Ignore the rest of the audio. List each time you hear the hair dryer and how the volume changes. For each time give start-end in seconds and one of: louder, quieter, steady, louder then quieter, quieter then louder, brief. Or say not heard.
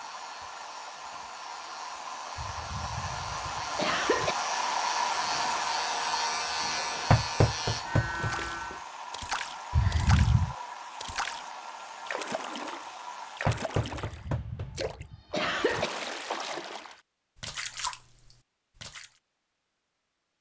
0.0-13.4 louder then quieter.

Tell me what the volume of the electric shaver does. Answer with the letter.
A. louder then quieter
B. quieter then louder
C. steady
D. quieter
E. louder
E.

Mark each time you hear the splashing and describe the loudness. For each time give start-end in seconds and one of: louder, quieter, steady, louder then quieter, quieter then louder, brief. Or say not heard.
8.1-19.1 steady.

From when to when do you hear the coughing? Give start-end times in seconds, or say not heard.
2.4-4.3, 9.7-10.6, 13.9-15.9.